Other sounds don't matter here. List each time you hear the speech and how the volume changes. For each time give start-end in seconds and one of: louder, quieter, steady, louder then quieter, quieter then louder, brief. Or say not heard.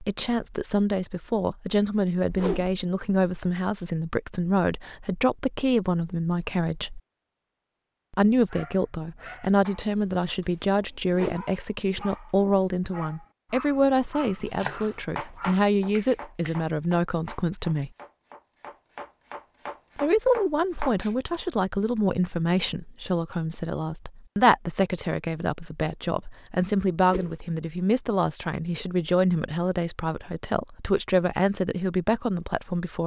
0.0-7.0 steady
8.1-17.9 steady
20.0-33.0 steady.